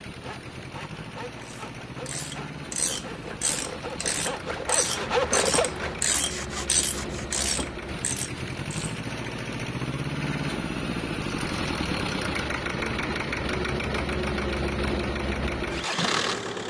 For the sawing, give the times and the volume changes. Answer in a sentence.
You can hear the sawing from 0.1 to 7.4 s, getting louder then quieter.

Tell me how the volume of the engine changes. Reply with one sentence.
The loudness of the engine goes up.